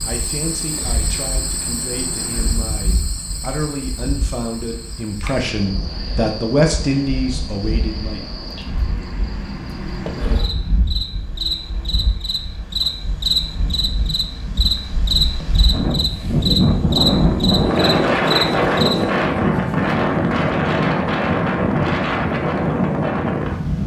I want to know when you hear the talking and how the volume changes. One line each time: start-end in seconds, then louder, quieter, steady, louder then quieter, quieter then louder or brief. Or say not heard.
0.0-8.2 louder.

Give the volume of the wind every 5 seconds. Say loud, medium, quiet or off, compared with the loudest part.
quiet, quiet, quiet, loud, loud.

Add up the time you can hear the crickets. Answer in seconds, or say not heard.
19 s.